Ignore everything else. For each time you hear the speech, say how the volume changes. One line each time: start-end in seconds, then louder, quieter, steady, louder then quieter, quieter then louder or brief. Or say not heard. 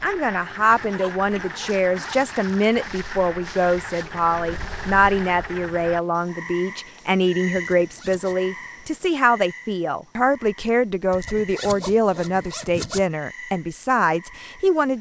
0.0-14.9 steady.